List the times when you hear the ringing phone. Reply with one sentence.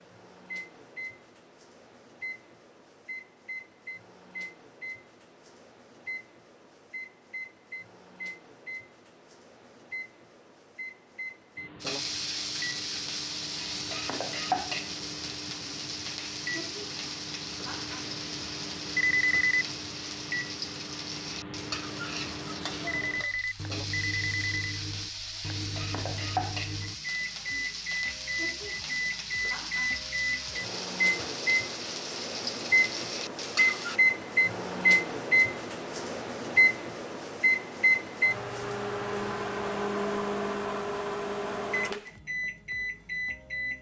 The ringing phone can be heard from 18.9 to 19.6 s and from 22.9 to 24.8 s.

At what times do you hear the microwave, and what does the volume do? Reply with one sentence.
The microwave can be heard from 0.0 to 43.7 s, getting louder.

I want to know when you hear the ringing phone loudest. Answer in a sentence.
The loudest moment of the ringing phone is at 19 seconds.